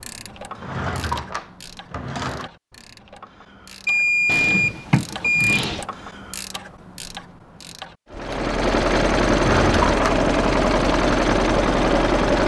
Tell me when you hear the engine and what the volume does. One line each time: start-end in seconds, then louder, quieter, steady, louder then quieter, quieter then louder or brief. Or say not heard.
8.1-12.4 steady.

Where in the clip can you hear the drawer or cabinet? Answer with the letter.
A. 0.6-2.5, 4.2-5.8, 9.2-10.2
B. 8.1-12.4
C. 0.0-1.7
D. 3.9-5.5
A.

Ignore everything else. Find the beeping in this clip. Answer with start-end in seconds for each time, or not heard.
3.9-5.5.